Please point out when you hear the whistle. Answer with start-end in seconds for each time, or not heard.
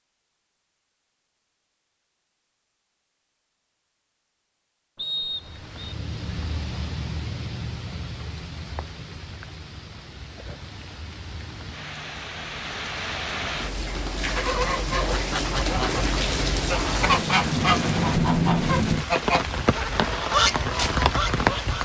5.0-5.9.